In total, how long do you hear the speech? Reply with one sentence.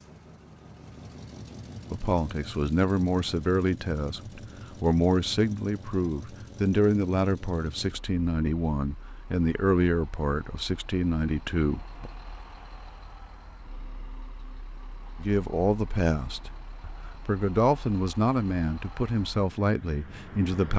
The speech can be heard for 16 seconds in total.